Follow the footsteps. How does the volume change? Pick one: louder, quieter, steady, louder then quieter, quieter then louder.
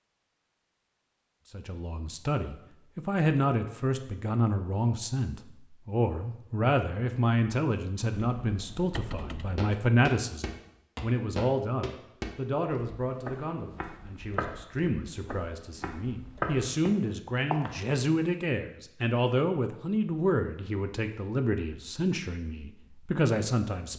quieter then louder.